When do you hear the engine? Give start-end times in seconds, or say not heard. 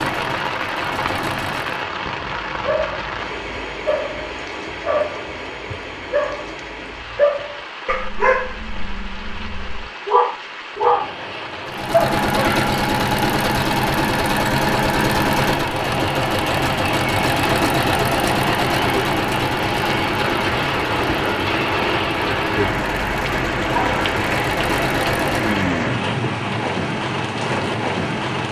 0.0-1.9, 11.7-25.6.